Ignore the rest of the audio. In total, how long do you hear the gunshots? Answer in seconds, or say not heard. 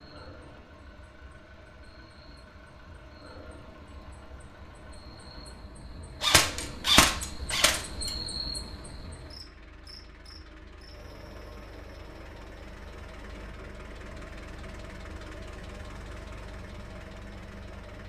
2 s.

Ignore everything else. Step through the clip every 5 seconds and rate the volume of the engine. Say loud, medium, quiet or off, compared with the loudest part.
medium, medium, loud, loud.